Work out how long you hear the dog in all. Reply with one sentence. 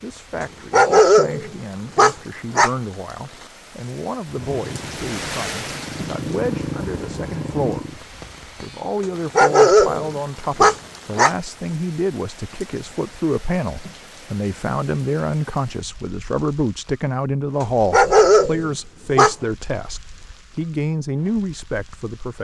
The dog can be heard for 6 seconds in total.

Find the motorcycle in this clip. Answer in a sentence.
You can hear the motorcycle from 4.2 to 8.0 s.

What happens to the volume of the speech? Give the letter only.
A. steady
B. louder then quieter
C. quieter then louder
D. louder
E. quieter
D.